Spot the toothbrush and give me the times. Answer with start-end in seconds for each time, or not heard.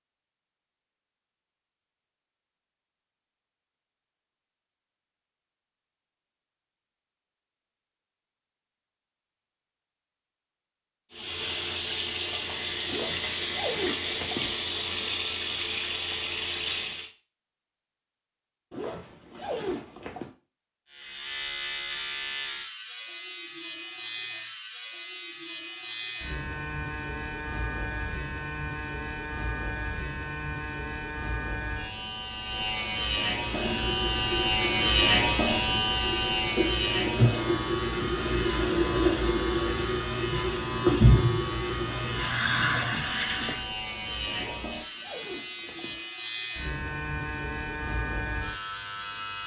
not heard.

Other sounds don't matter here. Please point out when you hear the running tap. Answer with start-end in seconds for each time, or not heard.
11.1-17.1, 33.4-43.6.